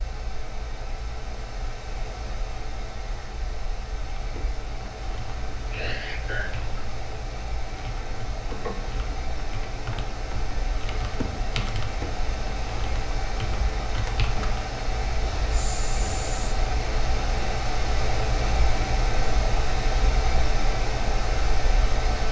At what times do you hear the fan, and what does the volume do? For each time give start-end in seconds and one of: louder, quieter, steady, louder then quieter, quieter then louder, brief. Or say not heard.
0.0-22.2 louder.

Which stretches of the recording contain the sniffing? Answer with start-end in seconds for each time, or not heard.
5.7-6.5, 15.5-16.6.